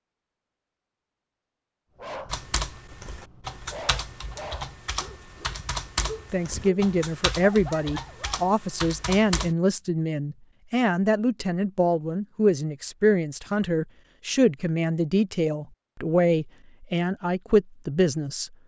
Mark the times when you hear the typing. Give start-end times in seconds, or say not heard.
2.3-9.6.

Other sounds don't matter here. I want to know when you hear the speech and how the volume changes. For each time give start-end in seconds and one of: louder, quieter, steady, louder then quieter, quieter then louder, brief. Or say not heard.
6.3-18.5 steady.